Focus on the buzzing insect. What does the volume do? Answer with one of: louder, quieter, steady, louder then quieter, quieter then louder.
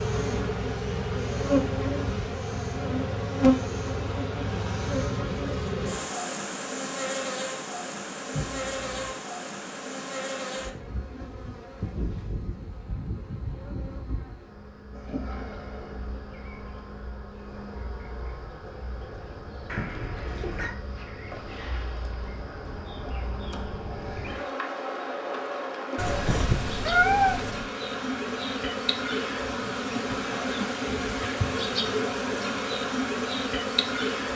quieter then louder.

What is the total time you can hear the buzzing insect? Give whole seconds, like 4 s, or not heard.
34 s.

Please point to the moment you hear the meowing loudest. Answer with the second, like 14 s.
27 s.